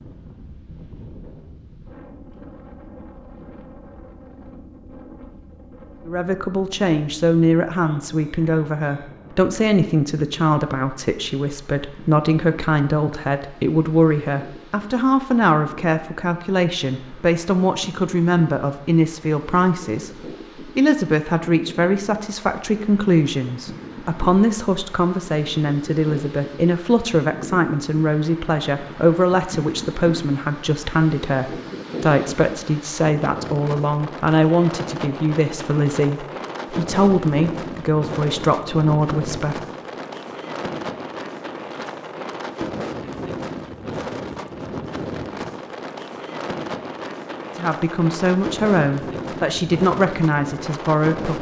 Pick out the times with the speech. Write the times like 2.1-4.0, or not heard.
6.0-39.6, 47.5-51.3.